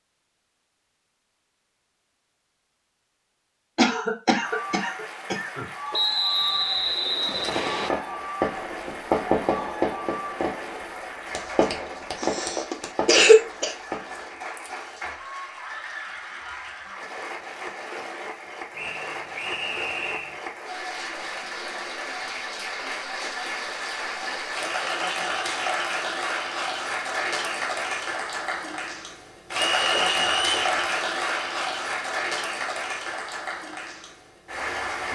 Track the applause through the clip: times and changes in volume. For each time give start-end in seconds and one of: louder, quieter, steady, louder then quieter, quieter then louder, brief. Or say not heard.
4.4-35.0 louder.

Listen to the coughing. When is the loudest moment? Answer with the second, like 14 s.
13 s.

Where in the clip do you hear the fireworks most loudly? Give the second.
9 s.